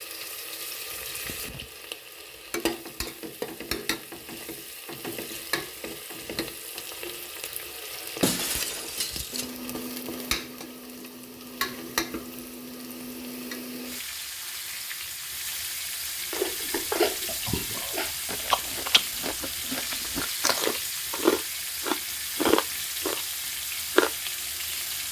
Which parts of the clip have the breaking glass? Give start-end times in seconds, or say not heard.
8.2-9.5.